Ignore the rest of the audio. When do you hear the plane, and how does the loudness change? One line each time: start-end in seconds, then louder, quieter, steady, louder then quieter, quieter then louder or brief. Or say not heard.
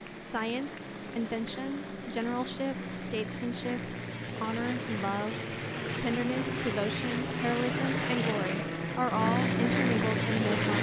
0.0-10.7 louder.